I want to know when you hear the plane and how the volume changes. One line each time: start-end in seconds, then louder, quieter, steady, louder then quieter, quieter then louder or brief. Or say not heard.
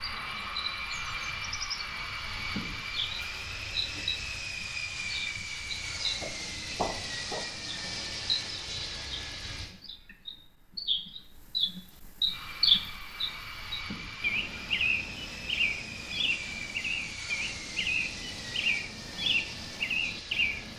0.0-9.7 steady
12.2-20.7 steady.